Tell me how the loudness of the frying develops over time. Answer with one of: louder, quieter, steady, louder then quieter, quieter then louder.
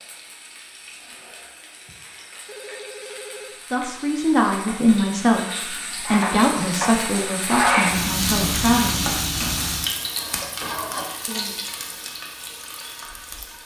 louder then quieter.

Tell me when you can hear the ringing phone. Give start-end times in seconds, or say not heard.
2.5-3.6.